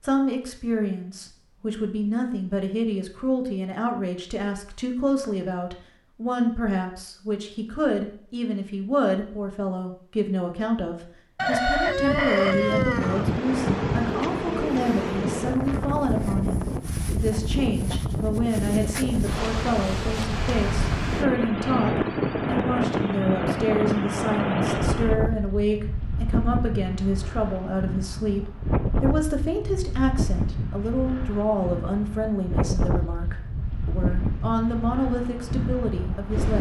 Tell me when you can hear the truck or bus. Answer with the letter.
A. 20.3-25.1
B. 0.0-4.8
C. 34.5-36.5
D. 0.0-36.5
A.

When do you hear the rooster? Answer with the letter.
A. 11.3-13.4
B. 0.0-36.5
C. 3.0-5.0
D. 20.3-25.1
A.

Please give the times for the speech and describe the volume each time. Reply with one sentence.
You can hear the speech from 0.0 to 36.5 s, at a steady volume.